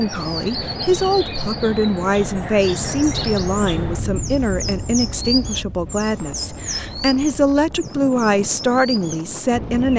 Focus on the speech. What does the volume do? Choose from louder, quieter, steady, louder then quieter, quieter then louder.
steady.